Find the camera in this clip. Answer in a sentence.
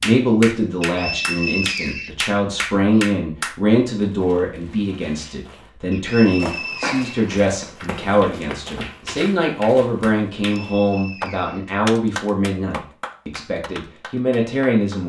You can't hear the camera here.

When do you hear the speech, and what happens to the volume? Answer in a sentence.
You can hear the speech from 0.0 to 15.0 s, at a steady volume.